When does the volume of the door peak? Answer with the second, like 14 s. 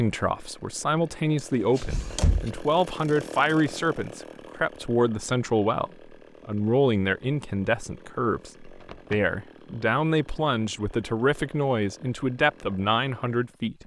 2 s.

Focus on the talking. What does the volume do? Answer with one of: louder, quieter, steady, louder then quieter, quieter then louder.
steady.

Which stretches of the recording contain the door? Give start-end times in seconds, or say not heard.
1.4-2.5, 8.8-9.3.